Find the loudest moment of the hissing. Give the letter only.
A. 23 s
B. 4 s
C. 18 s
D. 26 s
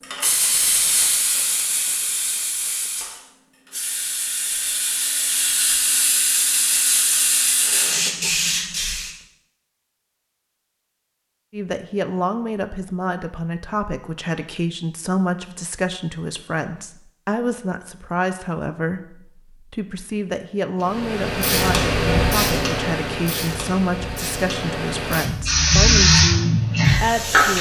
D.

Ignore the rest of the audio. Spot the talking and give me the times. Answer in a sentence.
The talking can be heard from 11.5 to 27.5 s.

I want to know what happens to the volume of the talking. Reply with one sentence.
The loudness of the talking stays about the same.